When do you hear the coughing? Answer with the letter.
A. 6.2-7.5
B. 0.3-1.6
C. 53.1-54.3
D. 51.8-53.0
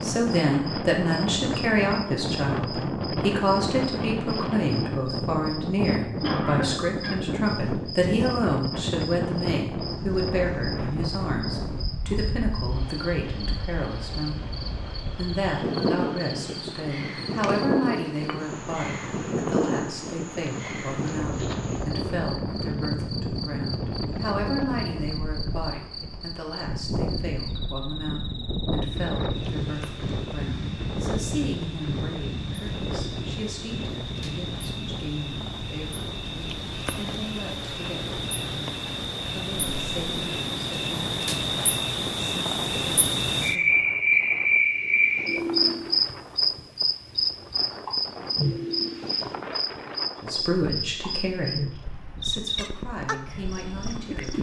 A.